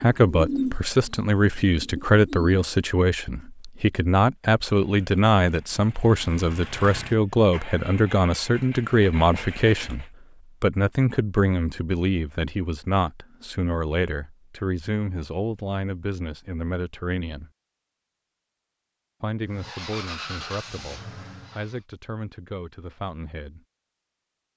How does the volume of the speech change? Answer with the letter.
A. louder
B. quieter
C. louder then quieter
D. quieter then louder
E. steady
B.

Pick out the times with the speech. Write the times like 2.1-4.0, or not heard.
0.0-17.5, 19.2-23.6.